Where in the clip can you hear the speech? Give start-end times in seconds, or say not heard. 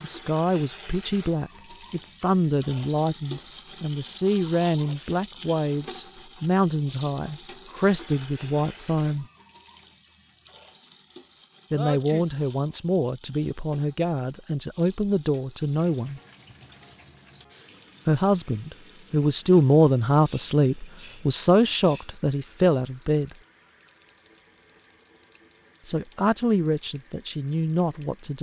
0.0-9.2, 11.7-16.2, 18.1-23.4, 25.9-28.3.